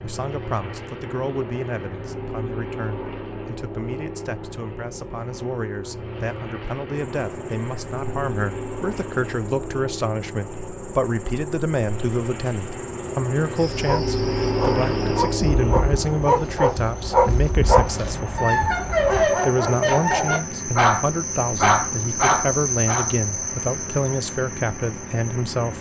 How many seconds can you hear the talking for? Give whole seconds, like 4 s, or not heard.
26 s.